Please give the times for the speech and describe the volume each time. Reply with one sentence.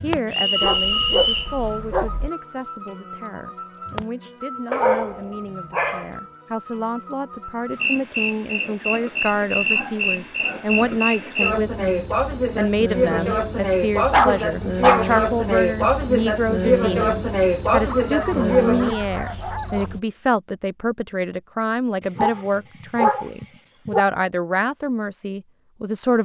You can hear the speech from 0.0 to 26.1 s, getting louder.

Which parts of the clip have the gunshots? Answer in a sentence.
The gunshots can't be heard in this clip.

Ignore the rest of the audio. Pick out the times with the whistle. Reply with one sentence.
You can hear the whistle from 0.3 to 1.6 s.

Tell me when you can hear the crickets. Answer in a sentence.
You can hear the crickets from 0.0 to 20.0 s.